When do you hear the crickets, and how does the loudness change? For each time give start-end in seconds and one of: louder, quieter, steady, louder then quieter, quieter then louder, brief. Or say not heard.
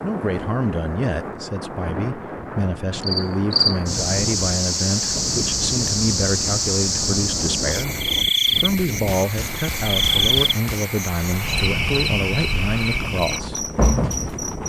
3.0-14.6 steady.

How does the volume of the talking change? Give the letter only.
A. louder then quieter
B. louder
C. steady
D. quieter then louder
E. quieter
C.